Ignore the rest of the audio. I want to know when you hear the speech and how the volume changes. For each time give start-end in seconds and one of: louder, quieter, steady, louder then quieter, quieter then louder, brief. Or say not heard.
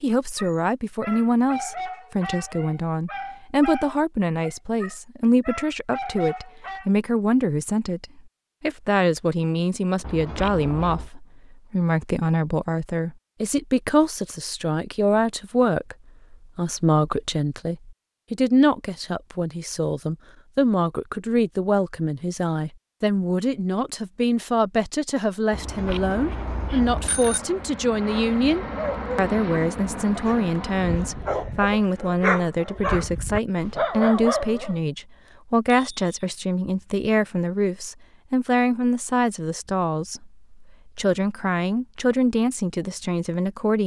0.0-43.8 steady.